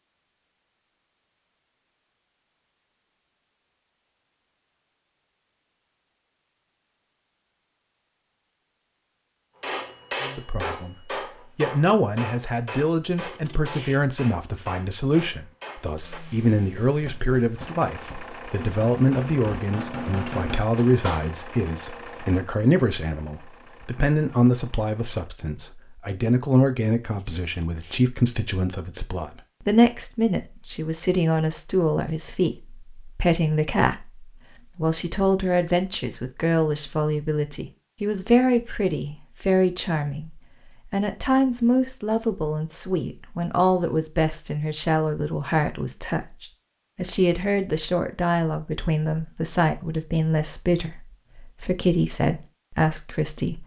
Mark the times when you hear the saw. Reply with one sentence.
The saw can't be heard in this clip.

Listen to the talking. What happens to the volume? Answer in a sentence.
The volume of the talking stays about the same.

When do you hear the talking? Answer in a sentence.
You can hear the talking from 10.2 to 53.6 s.